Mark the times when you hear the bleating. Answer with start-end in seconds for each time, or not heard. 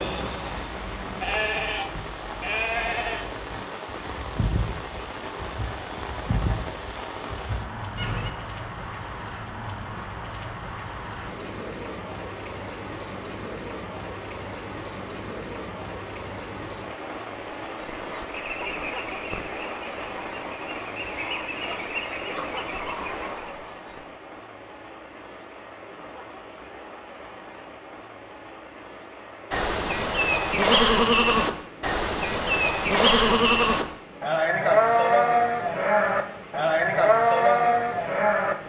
0.0-8.3, 29.5-38.5.